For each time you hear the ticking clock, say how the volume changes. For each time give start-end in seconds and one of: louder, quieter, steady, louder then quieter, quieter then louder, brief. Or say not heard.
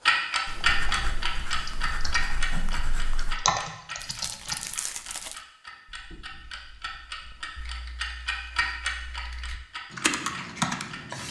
0.1-11.2 quieter then louder.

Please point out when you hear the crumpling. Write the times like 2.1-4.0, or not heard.
4.0-5.4.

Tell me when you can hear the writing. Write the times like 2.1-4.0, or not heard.
0.5-3.4, 5.8-7.6.